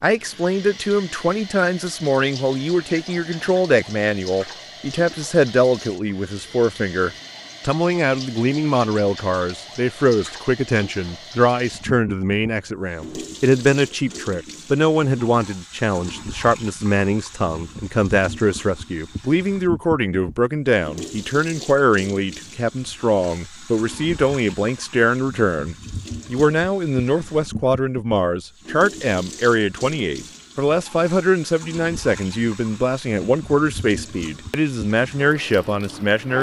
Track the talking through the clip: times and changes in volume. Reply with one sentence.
The talking can be heard from 0.0 to 36.3 s, at a steady volume.